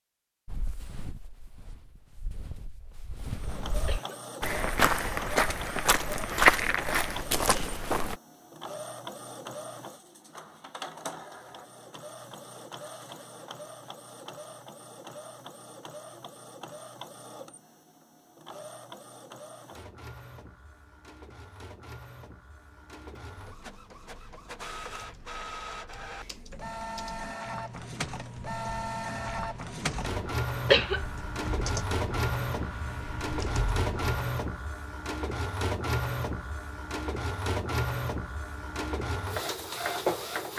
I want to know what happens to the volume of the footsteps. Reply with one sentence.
The loudness of the footsteps goes up.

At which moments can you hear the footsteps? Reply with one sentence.
The footsteps can be heard from 0.5 to 8.2 s.